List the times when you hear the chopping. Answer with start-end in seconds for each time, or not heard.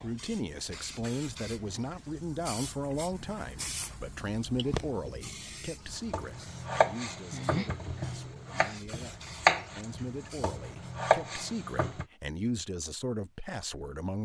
6.0-12.1.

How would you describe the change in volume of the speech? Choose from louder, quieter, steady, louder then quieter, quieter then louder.
quieter then louder.